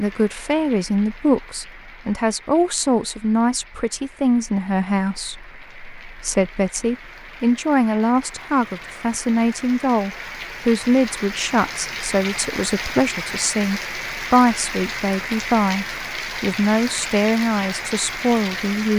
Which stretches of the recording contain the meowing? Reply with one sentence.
The meowing can't be heard in this clip.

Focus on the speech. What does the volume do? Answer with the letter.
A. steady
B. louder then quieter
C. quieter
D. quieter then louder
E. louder
A.